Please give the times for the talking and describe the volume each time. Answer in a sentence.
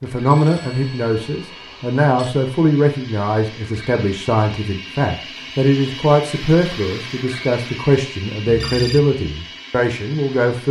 You can hear the talking from 0.0 to 10.6 s, at a steady volume.